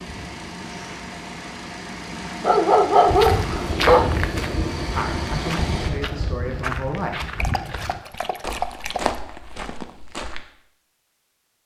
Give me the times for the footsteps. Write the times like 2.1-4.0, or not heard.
3.0-10.4.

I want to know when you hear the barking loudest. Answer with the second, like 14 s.
3 s.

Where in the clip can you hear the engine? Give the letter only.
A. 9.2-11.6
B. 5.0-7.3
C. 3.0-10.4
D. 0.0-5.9
D.